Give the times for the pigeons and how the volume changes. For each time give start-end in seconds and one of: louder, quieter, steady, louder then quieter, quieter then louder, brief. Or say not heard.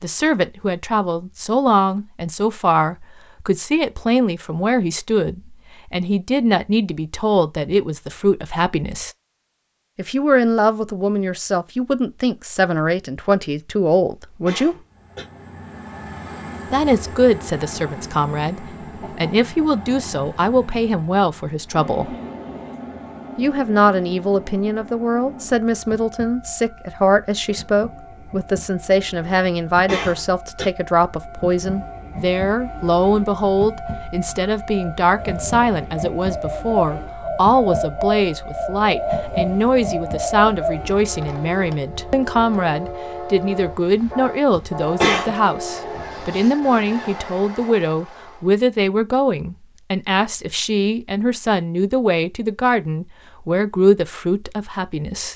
34.2-40.8 louder.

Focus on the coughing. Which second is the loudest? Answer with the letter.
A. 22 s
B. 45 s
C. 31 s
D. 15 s
B.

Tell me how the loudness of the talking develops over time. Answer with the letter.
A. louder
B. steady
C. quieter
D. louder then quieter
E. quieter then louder
B.